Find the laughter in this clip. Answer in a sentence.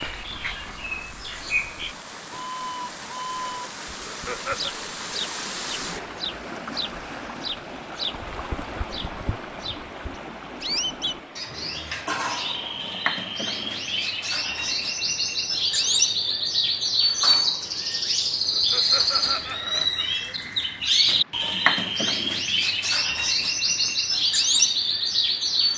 The laughter can be heard from 4.0 to 4.7 s and from 18.5 to 20.1 s.